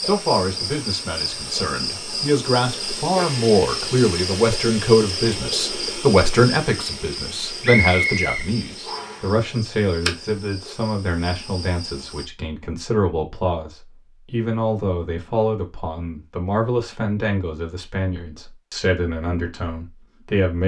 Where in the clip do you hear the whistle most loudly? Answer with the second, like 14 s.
8 s.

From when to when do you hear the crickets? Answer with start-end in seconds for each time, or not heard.
0.0-12.2.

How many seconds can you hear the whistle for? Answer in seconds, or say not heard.
2 s.